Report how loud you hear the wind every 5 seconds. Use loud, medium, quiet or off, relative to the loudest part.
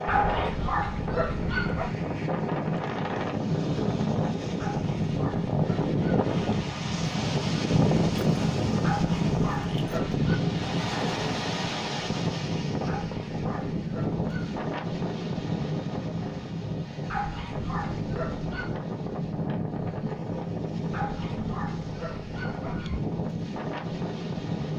loud, loud, loud, medium, medium.